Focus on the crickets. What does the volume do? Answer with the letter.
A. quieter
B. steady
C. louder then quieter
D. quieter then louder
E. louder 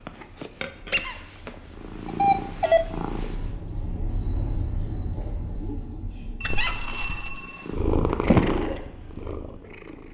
C.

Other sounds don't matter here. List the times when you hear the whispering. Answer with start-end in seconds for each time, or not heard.
not heard.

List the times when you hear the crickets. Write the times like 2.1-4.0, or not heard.
0.0-7.7.